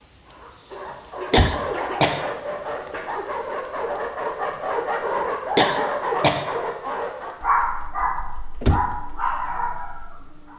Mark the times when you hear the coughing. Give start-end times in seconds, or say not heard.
1.3-2.2, 5.5-6.5.